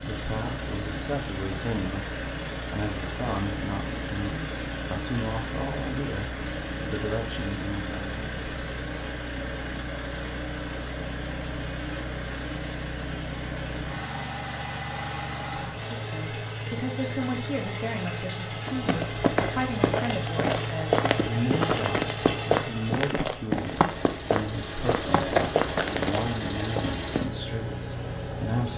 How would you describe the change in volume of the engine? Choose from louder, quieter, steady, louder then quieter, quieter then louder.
steady.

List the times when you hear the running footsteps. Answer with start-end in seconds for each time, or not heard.
18.6-27.2.